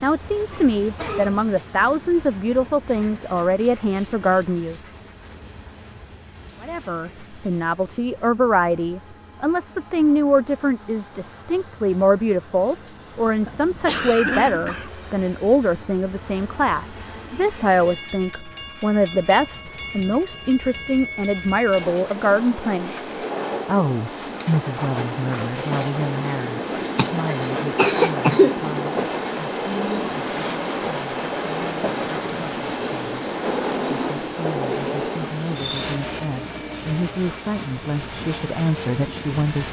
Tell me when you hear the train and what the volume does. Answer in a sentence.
The train can be heard from 0.0 to 39.6 s, getting louder.